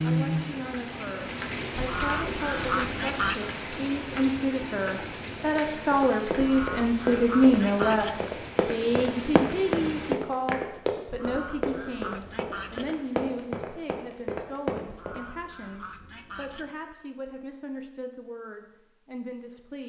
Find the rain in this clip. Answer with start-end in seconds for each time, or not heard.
0.0-10.2.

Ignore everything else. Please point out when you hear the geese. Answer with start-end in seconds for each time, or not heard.
1.8-3.4, 6.3-8.2, 11.1-12.9, 14.8-16.8.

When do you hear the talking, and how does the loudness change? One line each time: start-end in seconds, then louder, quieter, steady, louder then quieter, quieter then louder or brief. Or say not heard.
0.0-19.8 louder then quieter.